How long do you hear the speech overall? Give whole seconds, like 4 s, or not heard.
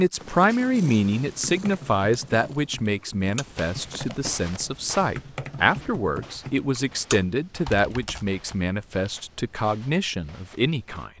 11 s.